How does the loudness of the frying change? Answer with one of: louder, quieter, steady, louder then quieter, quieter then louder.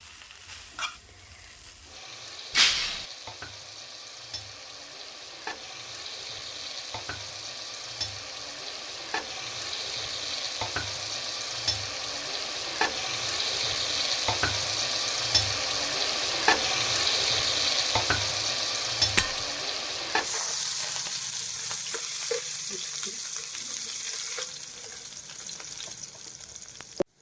louder then quieter.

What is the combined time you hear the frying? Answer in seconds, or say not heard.
27 s.